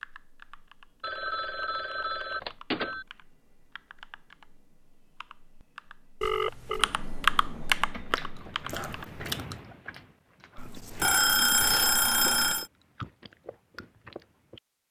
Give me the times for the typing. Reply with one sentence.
You can hear the typing from 0.0 to 9.2 s.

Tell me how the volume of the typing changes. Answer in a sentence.
The loudness of the typing goes up.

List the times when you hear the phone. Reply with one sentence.
The phone can be heard from 1.0 to 3.0 s, from 6.2 to 6.9 s and from 10.6 to 12.7 s.